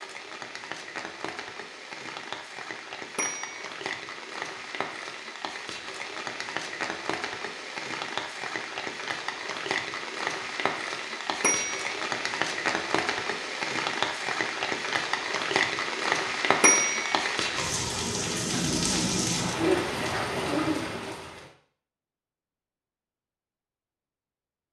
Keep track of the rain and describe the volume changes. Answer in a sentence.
The volume of the rain goes up.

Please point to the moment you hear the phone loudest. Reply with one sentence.
The volume of the phone peaks at 17 seconds.